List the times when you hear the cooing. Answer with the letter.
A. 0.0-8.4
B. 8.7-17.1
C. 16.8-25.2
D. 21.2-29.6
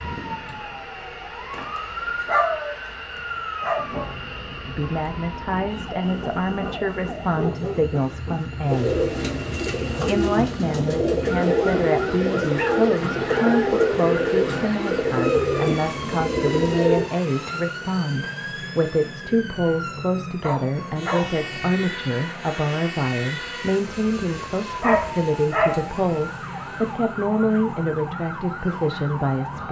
B.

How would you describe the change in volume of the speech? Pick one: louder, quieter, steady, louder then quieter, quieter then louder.
steady.